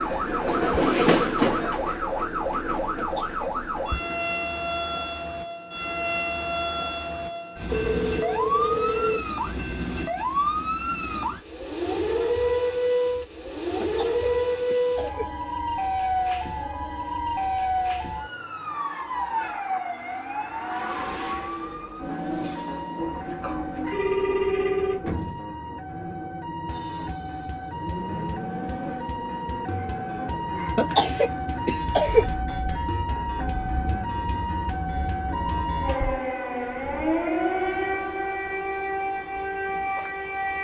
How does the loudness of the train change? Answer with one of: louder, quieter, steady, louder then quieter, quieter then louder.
quieter.